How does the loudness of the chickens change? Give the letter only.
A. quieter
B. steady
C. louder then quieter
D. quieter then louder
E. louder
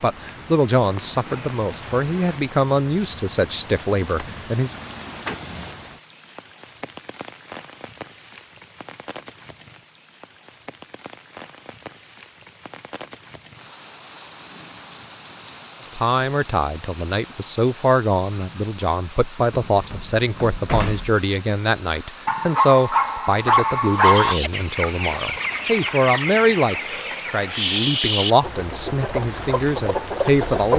B.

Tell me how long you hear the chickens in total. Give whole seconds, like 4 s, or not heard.
7 s.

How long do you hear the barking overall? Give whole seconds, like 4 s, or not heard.
2 s.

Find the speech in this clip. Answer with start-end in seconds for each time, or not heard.
0.0-4.8, 15.9-30.7.